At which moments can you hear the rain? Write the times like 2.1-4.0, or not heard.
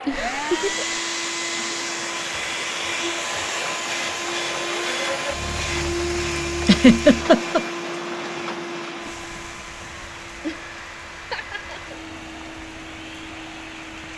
0.0-14.1.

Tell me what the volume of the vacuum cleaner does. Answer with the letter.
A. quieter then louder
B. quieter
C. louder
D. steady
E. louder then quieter
B.